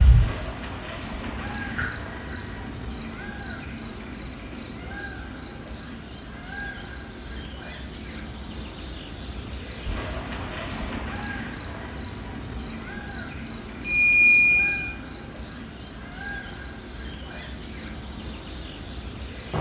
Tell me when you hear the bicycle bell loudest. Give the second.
14 s.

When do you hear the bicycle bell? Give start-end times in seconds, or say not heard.
1.8-2.7, 13.8-14.9.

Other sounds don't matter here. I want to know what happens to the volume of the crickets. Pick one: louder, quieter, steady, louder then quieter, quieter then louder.
steady.